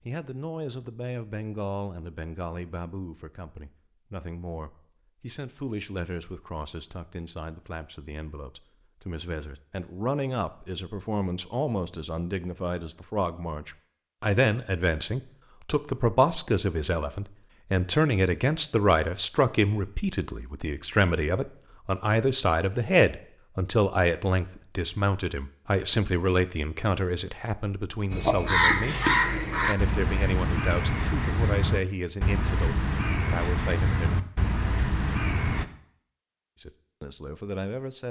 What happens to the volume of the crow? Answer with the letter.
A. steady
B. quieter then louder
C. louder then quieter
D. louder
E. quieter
E.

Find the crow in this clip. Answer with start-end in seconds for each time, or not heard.
28.1-35.6.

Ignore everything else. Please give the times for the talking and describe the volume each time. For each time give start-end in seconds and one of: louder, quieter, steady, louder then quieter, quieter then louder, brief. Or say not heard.
0.1-34.2 louder then quieter
36.5-38.0 brief.